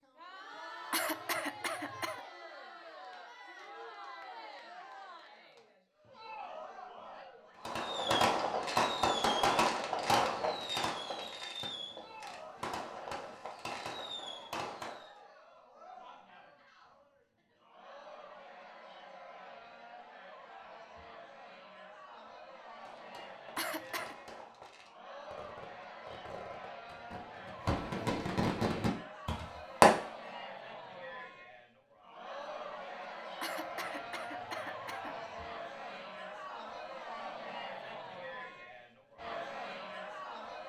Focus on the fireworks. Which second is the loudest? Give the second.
30 s.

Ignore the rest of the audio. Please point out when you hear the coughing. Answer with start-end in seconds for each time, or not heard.
0.9-2.2, 23.6-24.1, 33.4-35.2.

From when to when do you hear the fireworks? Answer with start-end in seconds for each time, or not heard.
7.7-15.2, 22.7-30.1.